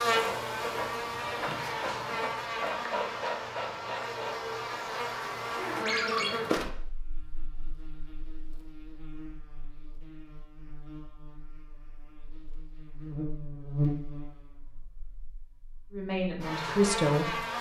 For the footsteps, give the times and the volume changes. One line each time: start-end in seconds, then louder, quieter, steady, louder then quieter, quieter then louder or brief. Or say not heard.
not heard.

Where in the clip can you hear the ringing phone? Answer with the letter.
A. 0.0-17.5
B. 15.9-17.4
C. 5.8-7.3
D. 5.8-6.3
D.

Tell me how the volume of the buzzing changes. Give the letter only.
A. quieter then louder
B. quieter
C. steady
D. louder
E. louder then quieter
A.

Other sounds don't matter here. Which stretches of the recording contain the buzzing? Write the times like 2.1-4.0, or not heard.
0.0-17.5.